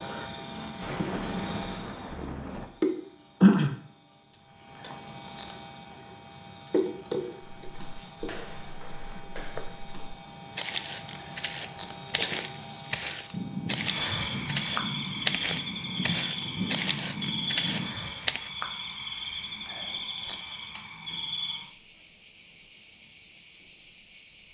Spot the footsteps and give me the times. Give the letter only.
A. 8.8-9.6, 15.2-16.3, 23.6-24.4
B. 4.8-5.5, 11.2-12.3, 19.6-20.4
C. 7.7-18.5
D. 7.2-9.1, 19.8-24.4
C.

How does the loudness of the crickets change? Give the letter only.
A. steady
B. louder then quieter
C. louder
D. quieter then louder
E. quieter
E.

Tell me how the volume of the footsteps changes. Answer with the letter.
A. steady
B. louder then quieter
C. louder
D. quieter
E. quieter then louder
C.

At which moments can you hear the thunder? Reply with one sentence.
The thunder can be heard from 0.8 to 2.6 s and from 13.3 to 18.0 s.